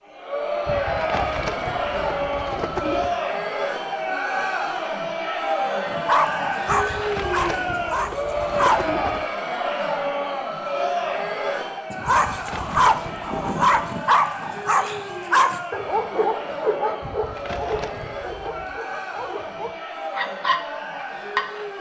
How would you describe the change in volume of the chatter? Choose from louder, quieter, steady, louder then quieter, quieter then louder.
quieter.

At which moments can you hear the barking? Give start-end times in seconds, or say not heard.
6.0-8.8, 11.9-21.4.